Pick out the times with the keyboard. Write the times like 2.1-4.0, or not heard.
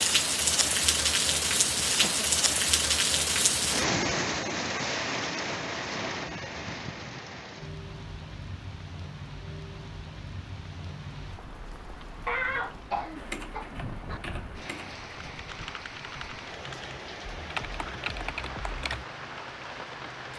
13.2-19.1.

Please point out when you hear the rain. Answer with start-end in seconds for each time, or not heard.
0.0-20.3.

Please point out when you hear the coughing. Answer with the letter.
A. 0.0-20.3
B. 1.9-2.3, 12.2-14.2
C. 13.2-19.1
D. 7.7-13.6
B.